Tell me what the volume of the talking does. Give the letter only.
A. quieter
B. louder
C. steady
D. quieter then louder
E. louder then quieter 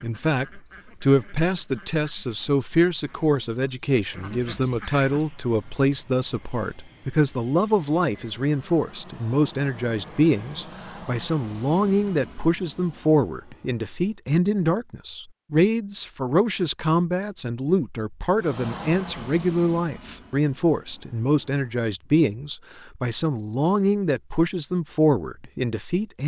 C.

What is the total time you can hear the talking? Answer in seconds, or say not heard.
26 s.